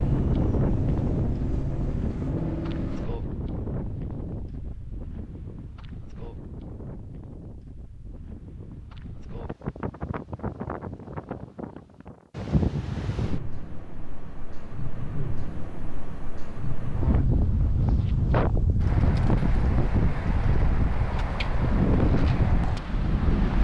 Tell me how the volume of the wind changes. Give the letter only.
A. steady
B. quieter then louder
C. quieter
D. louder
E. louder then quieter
B.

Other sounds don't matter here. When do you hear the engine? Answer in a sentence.
You can hear the engine from 0.0 to 3.1 s.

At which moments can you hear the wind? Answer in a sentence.
You can hear the wind from 0.0 to 23.5 s.